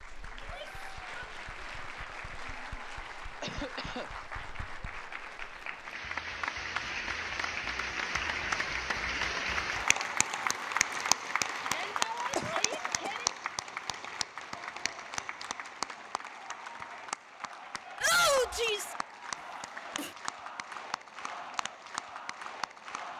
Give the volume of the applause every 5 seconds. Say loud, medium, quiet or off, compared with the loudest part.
medium, loud, loud, medium, medium.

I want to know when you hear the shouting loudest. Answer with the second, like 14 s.
18 s.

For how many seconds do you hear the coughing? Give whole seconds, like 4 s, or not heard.
2 s.